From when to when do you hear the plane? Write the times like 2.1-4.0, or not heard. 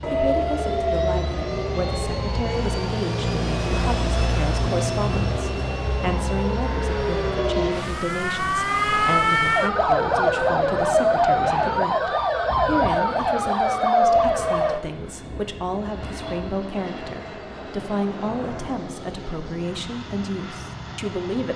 0.0-21.5.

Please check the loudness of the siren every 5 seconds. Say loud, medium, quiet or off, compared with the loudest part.
medium, loud, loud, off, off.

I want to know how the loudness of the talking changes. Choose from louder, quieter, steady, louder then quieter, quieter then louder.
steady.